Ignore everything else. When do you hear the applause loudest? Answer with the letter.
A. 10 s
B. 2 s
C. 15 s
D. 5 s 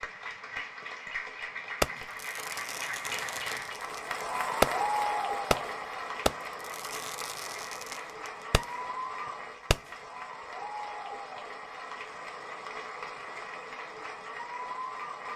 D.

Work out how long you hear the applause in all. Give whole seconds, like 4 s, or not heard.
15 s.